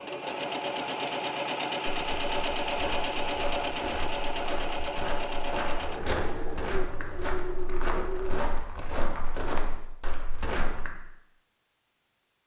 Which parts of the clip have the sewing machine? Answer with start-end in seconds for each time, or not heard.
0.0-8.4.